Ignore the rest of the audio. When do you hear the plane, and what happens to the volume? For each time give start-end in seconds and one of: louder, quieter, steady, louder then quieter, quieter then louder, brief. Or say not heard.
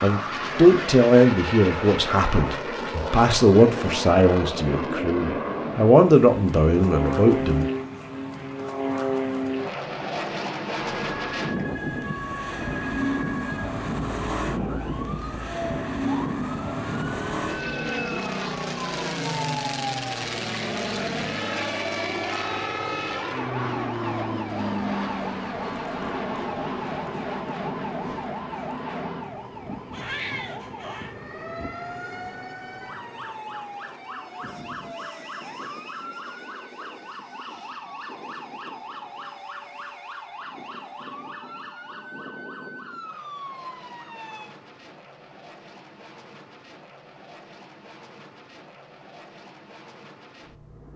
0.0-50.9 quieter.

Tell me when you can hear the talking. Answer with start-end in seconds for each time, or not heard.
0.0-7.7.